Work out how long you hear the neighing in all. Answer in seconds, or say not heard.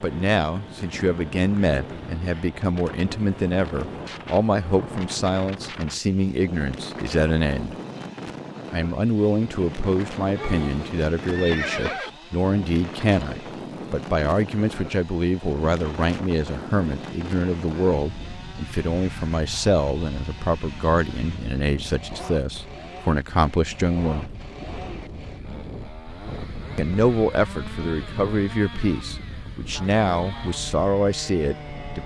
2 s.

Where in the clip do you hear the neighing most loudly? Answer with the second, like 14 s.
12 s.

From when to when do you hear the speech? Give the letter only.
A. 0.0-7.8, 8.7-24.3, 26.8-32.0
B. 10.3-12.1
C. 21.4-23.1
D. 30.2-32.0
A.